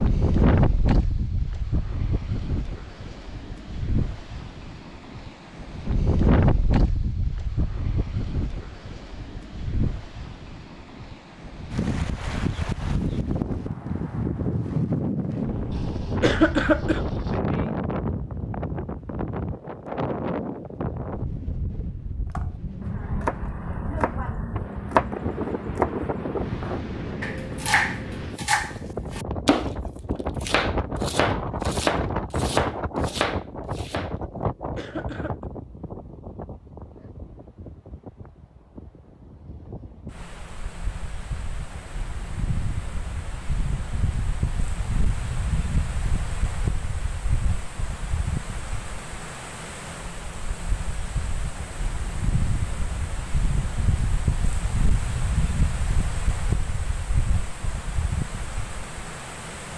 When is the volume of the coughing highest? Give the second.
17 s.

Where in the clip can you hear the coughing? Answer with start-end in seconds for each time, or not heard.
16.2-17.0, 34.8-35.5.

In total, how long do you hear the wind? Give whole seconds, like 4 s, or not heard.
60 s.